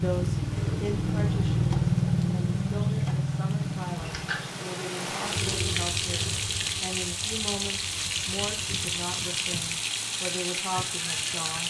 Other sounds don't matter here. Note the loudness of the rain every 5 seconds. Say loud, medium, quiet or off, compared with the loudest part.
quiet, loud, loud.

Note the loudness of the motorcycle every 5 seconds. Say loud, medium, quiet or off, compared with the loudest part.
loud, quiet, off.